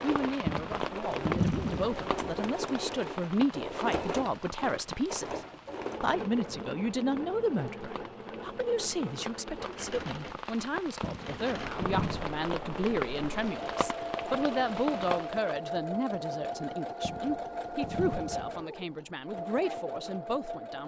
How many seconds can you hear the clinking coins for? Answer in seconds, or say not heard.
5 s.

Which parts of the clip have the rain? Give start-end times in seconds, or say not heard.
0.0-15.6.